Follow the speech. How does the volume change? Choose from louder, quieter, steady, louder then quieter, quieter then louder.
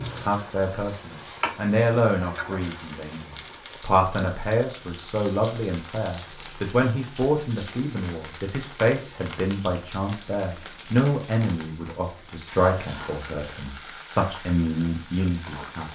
steady.